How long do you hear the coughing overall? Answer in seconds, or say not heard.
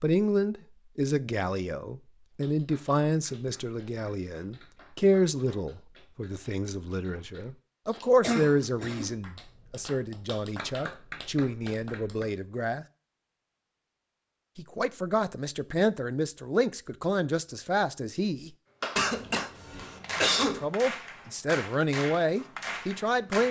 3 s.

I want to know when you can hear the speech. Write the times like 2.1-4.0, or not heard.
0.0-12.8, 14.6-18.5, 20.6-23.4.